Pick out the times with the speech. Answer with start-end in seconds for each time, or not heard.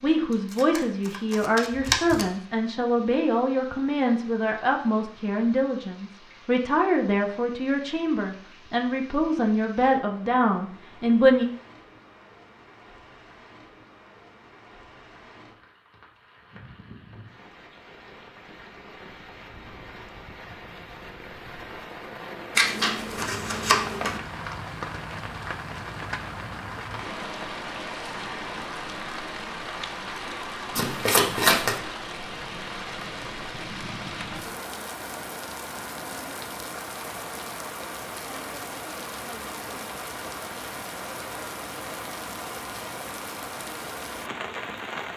0.0-11.4.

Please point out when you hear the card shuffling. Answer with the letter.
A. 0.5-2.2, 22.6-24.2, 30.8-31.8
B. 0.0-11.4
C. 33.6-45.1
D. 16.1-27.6
A.